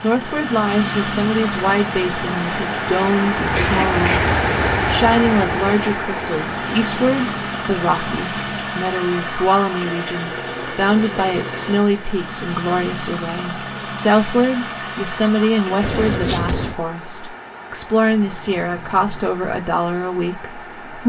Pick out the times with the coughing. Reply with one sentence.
The coughing can be heard from 3.5 to 4.3 s and from 15.8 to 16.8 s.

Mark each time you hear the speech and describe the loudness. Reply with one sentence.
The speech can be heard from 0.0 to 21.0 s, at a steady volume.